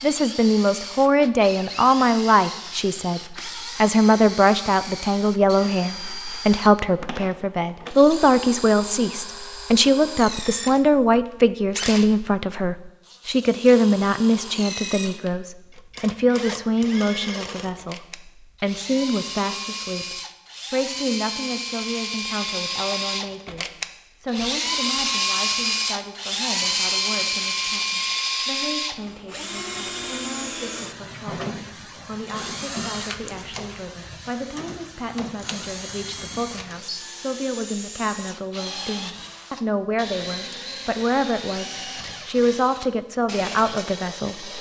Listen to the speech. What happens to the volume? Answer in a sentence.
The volume of the speech goes down, then up.